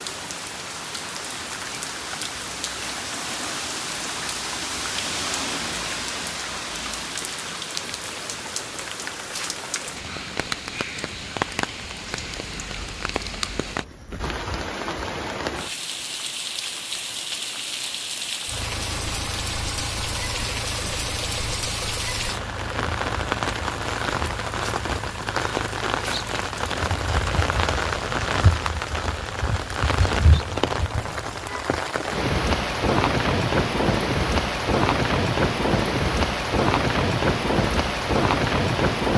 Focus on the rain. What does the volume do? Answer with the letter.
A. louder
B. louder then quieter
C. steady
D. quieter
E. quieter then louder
A.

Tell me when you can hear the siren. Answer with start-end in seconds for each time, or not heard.
not heard.